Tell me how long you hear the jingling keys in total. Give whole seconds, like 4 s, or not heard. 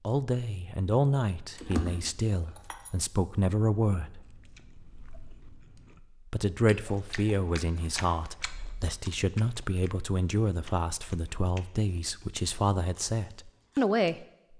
2 s.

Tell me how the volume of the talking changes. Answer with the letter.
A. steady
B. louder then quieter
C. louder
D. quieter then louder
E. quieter
A.